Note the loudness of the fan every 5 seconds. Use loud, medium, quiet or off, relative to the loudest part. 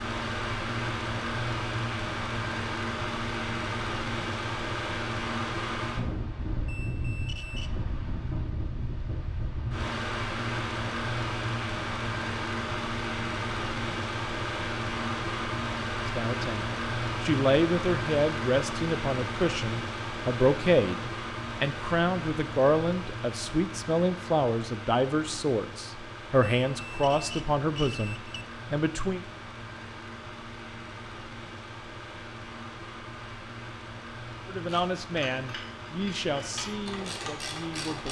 loud, loud, loud, loud, medium, medium, medium, medium.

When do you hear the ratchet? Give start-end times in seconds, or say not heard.
34.6-38.0.